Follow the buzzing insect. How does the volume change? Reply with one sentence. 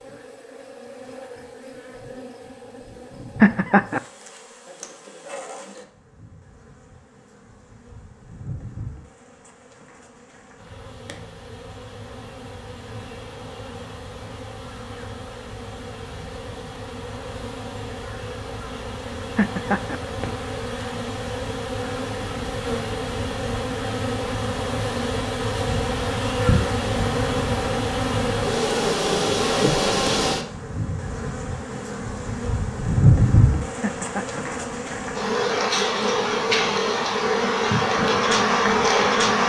The volume of the buzzing insect goes up.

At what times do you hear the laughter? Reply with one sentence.
The laughter can be heard from 3.4 to 4.0 s, from 19.4 to 19.9 s and from 33.8 to 34.4 s.